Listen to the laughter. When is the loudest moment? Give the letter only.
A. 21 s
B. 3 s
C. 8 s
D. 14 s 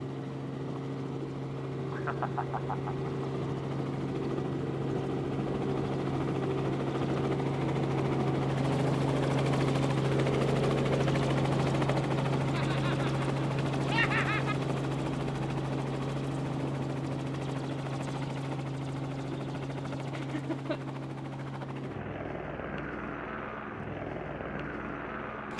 D.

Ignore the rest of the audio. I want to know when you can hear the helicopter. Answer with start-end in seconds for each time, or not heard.
0.0-25.5.